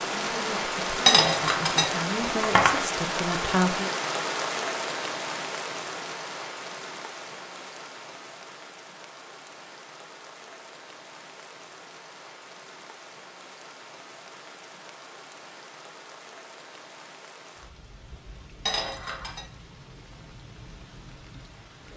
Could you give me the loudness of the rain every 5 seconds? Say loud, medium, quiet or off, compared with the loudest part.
loud, medium, quiet, quiet, quiet.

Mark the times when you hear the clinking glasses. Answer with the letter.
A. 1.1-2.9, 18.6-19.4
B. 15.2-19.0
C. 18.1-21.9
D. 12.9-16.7
A.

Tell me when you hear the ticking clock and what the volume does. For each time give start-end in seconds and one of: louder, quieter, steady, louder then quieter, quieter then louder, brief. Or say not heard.
not heard.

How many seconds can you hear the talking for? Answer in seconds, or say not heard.
4 s.